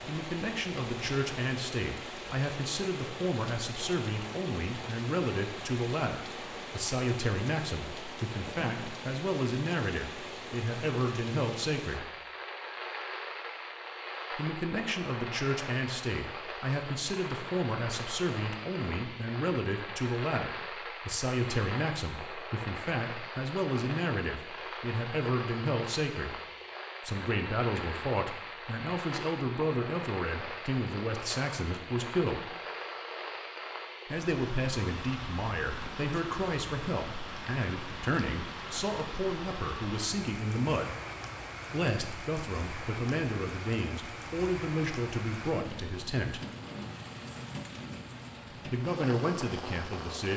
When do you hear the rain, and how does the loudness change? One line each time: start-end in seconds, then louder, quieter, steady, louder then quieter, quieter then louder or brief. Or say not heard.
0.0-50.3 steady.